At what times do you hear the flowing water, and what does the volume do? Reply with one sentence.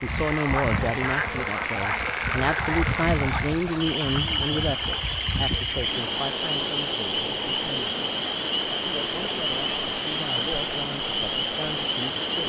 You can hear the flowing water from 0.0 to 12.4 s, at a steady volume.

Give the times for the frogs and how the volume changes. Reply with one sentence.
The frogs can be heard from 0.0 to 12.4 s, at a steady volume.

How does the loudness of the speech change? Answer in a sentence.
The loudness of the speech goes down.